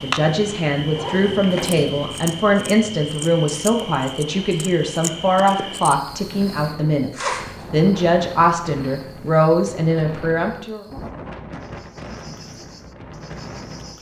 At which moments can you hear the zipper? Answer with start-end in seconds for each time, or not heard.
0.9-1.9, 7.1-7.7.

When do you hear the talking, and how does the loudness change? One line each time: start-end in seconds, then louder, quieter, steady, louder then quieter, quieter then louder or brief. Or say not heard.
0.0-10.8 steady.